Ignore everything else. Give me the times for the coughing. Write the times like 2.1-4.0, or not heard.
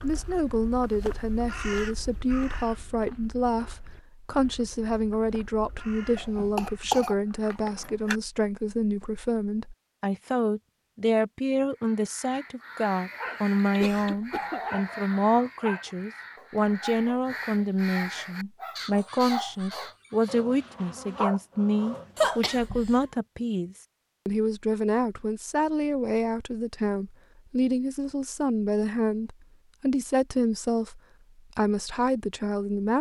6.2-8.2, 13.8-14.6, 22.1-23.1.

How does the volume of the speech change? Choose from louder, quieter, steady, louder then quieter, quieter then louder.
steady.